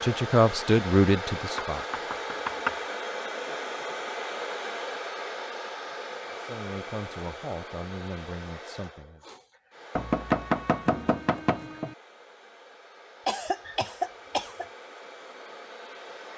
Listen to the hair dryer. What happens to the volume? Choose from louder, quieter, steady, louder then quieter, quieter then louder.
quieter.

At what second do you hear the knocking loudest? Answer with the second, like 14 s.
10 s.